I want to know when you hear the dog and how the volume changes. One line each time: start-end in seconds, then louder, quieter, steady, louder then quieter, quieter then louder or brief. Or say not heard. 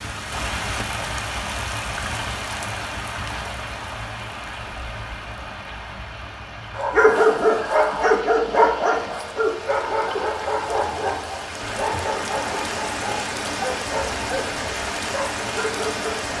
6.7-14.5 quieter
15.1-16.3 brief.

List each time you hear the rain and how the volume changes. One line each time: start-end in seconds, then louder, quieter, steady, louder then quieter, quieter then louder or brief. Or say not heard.
0.0-16.3 quieter then louder.